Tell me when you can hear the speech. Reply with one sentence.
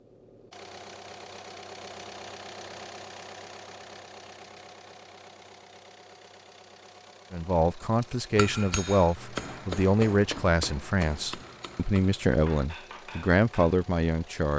The speech can be heard from 7.3 to 14.5 s.